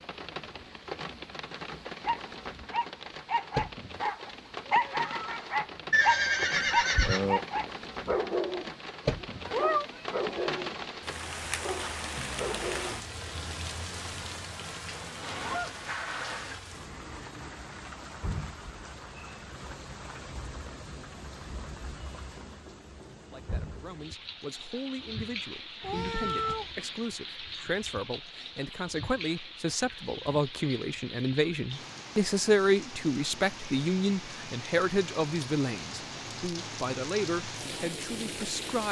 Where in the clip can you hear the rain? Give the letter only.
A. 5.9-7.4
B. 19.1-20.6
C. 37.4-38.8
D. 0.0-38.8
D.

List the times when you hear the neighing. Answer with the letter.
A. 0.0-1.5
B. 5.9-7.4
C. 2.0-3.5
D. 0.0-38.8
B.